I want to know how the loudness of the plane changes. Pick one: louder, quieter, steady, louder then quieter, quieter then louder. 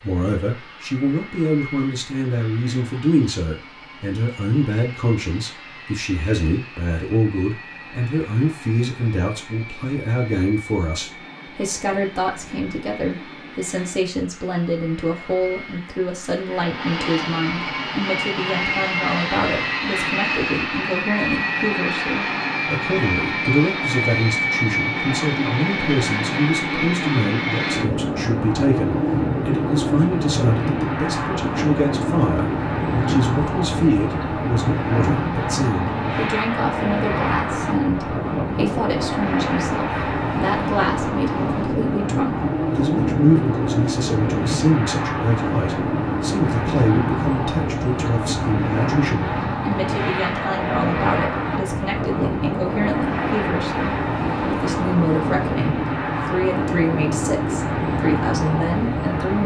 louder.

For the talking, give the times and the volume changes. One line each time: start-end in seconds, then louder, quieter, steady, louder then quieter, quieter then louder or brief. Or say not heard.
0.0-59.4 steady.